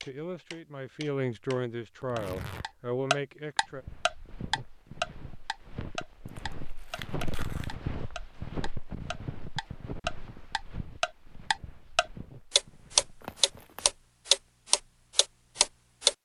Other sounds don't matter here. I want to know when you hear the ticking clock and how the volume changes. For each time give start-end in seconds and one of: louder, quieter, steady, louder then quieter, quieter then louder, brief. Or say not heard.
0.0-16.1 quieter then louder.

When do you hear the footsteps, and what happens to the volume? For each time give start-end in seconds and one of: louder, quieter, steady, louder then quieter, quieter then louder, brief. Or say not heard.
3.6-13.7 louder then quieter.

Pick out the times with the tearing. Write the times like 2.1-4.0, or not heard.
2.0-2.6, 6.2-7.8, 13.2-13.9.